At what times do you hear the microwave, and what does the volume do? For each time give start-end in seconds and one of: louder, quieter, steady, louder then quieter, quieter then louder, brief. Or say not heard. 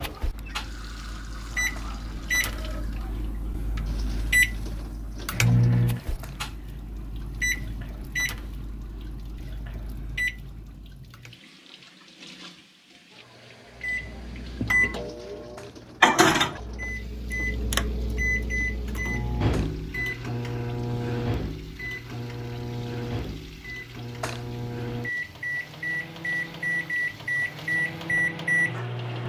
0.0-11.3 louder then quieter
13.8-29.2 quieter then louder.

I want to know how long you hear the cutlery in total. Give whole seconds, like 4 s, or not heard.
not heard.